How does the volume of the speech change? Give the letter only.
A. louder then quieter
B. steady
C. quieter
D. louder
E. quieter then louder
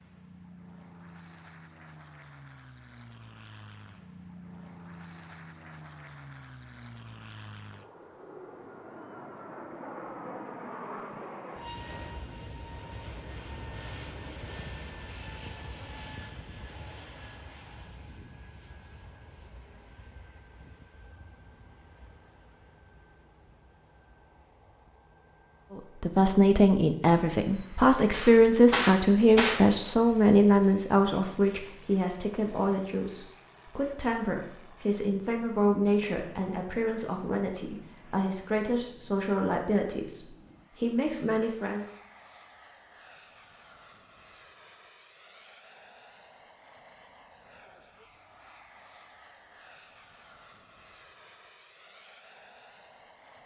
C.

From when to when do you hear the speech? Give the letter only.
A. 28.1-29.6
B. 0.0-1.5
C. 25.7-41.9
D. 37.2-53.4
C.